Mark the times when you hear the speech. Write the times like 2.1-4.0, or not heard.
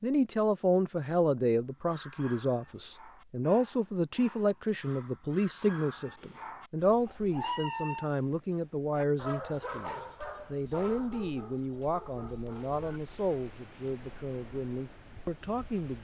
0.0-15.9.